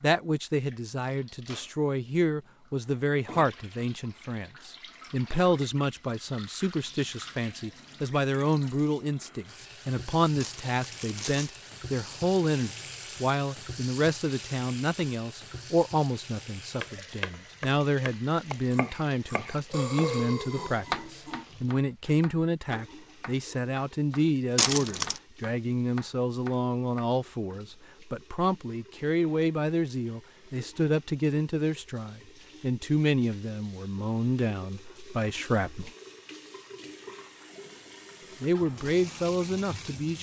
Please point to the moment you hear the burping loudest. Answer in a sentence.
The volume of the burping peaks at 20 seconds.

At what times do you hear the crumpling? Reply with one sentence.
You can hear the crumpling from 10.4 to 11.6 s and from 24.6 to 25.2 s.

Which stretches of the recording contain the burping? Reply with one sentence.
The burping can be heard from 19.7 to 21.4 s.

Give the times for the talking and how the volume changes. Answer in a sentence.
You can hear the talking from 0.0 to 35.9 s, at a steady volume; and briefly from 38.4 to 40.1 s.